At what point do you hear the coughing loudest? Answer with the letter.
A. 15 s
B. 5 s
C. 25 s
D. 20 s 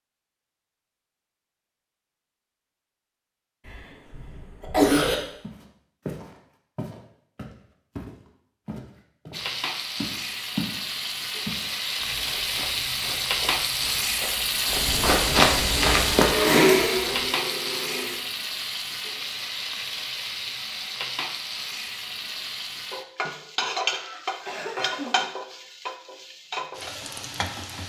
B.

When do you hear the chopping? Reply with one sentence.
You can't hear the chopping here.